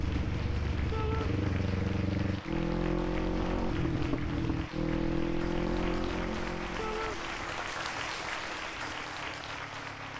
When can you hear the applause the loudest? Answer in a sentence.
The volume of the applause peaks at 8 seconds.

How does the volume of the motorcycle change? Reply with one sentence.
The loudness of the motorcycle goes down.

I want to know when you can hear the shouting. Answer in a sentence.
You can hear the shouting from 0.9 to 1.4 s and from 6.8 to 7.2 s.